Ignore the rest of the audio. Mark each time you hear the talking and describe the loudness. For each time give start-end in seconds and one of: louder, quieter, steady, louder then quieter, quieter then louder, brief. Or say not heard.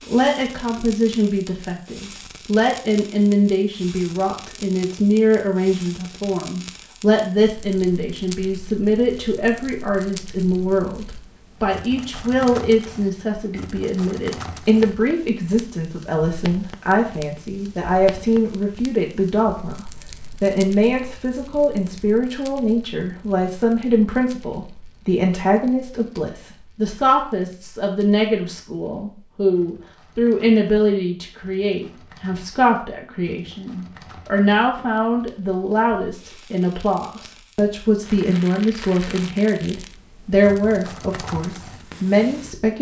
0.1-42.7 steady.